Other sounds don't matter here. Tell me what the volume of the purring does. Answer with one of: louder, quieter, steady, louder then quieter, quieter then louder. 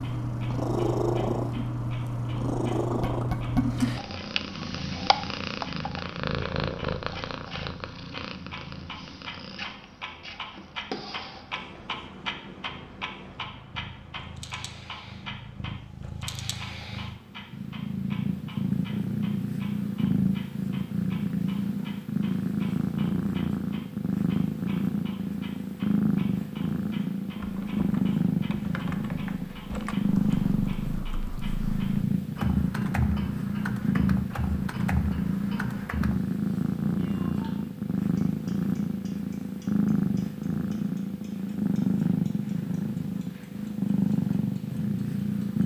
quieter then louder.